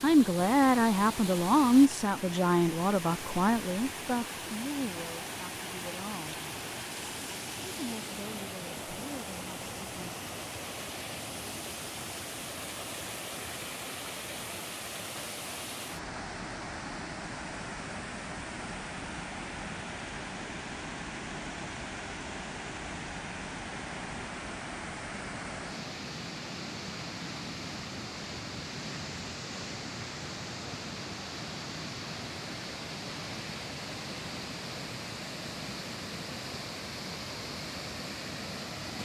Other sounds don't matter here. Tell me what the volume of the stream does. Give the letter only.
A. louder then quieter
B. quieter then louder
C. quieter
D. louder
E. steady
E.